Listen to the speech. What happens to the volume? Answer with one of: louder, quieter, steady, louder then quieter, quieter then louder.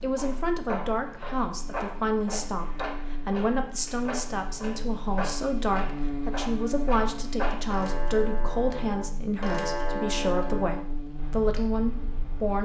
steady.